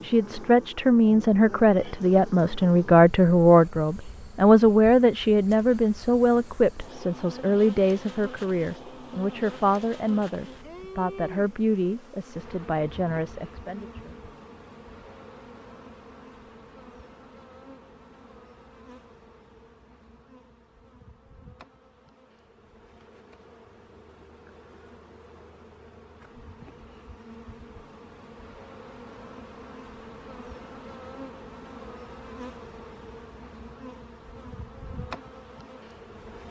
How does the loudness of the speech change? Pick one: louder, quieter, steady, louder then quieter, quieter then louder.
quieter.